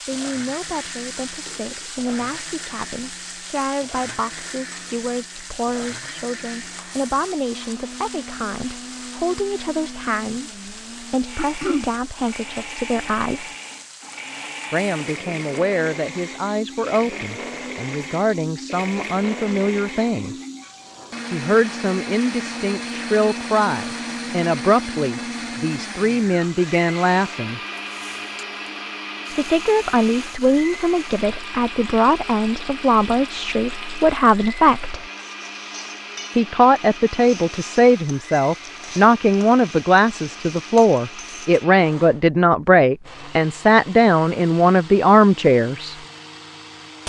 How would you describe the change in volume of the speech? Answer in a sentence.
The loudness of the speech goes up.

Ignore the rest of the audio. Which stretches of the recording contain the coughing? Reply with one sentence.
The coughing can be heard from 11.3 to 11.9 s.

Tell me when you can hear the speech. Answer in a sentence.
The speech can be heard from 0.1 to 13.5 s, from 14.7 to 20.4 s, from 21.3 to 27.6 s, from 29.3 to 35.0 s and from 36.4 to 46.0 s.